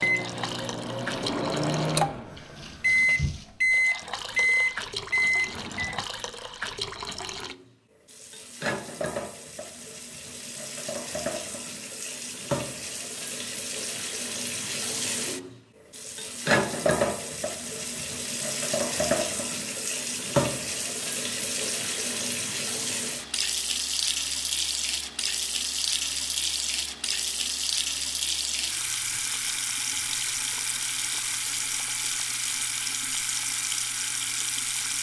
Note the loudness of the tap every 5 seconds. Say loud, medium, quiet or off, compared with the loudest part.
medium, medium, medium, loud, loud, loud, loud.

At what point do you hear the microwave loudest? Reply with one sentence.
The loudest moment of the microwave is at 3 seconds.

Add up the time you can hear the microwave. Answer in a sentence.
The microwave can be heard for 6 seconds in total.